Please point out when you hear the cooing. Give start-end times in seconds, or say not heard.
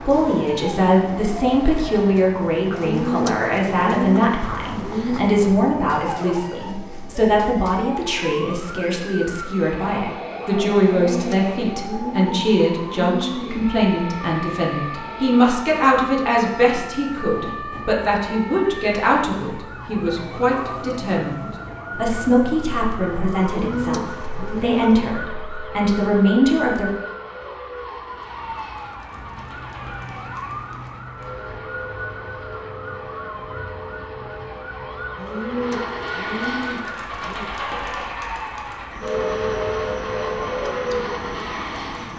2.7-5.3, 10.9-13.7, 23.4-25.0, 35.1-37.5.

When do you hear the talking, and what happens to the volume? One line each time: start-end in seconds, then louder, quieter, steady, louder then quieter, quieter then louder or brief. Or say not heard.
0.0-26.9 steady.